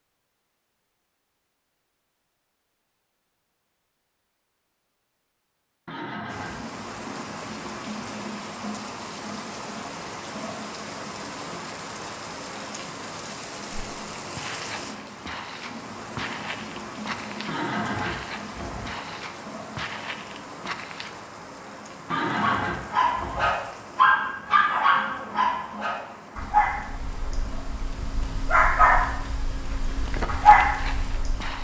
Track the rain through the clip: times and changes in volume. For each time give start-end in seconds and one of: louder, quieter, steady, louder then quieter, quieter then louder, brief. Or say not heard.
6.2-31.5 quieter.